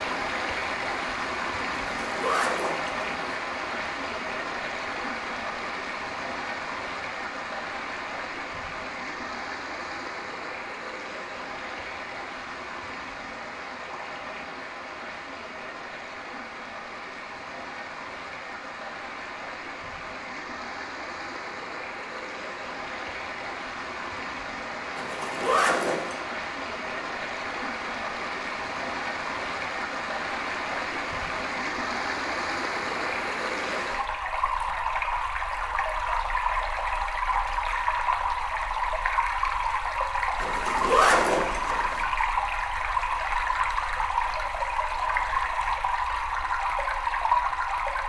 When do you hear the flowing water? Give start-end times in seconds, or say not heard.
0.0-48.0.